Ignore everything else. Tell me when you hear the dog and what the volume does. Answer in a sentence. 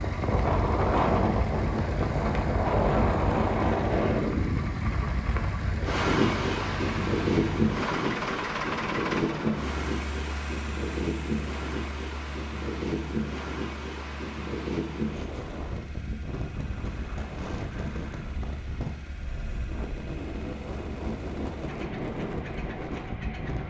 You can't hear the dog here.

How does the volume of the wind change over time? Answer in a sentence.
The volume of the wind goes down.